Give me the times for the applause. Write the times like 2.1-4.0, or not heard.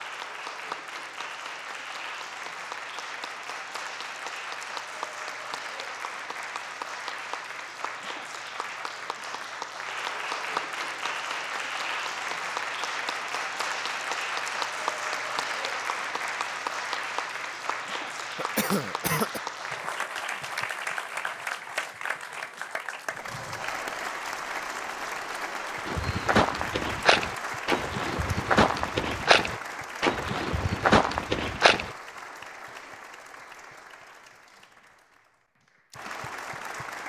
0.0-37.0.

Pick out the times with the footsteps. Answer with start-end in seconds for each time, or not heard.
25.9-31.9.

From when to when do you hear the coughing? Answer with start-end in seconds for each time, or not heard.
18.4-19.4.